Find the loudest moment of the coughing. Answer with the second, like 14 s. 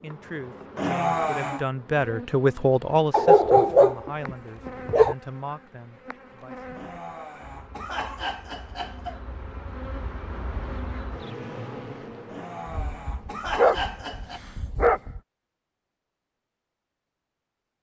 1 s.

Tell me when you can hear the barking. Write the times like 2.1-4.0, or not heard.
3.1-5.2, 12.7-15.2.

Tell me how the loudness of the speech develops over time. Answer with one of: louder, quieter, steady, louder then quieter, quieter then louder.
louder then quieter.